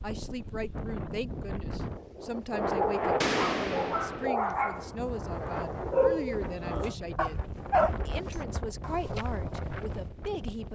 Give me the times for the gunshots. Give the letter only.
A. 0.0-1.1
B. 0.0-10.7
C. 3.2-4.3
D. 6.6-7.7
C.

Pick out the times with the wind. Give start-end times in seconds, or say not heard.
0.0-10.7.